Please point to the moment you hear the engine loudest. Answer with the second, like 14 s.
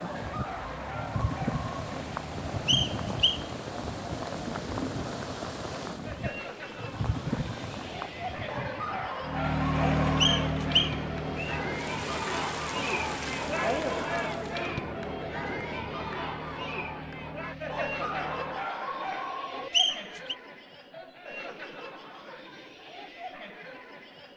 10 s.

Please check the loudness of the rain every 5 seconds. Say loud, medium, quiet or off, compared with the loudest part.
loud, loud, medium, off, off.